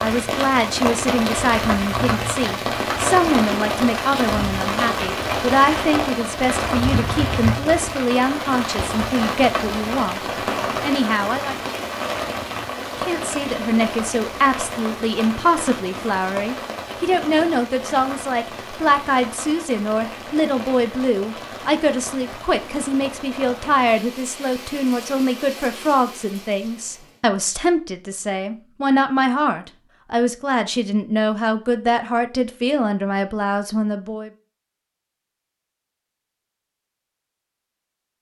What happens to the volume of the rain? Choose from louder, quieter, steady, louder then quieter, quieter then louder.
quieter.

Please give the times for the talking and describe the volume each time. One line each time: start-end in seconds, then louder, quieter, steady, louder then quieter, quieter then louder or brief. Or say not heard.
0.0-11.6 steady
12.8-34.3 steady.